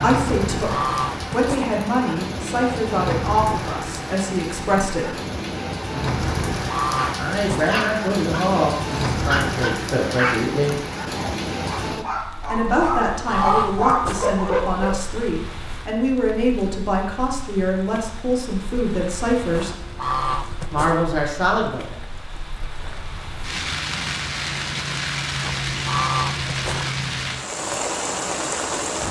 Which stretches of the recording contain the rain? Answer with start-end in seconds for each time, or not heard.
0.0-29.0.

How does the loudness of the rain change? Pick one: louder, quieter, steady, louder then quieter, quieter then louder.
quieter then louder.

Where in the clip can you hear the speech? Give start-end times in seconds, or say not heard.
0.0-5.2, 7.2-10.8, 12.5-19.8, 20.7-22.0.